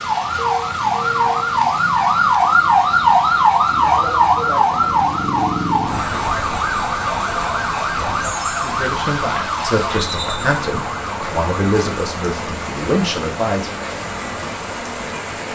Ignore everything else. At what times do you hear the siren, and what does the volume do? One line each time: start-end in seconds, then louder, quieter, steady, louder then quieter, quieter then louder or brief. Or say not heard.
0.0-15.4 quieter.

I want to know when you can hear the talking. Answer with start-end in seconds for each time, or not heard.
8.6-13.8.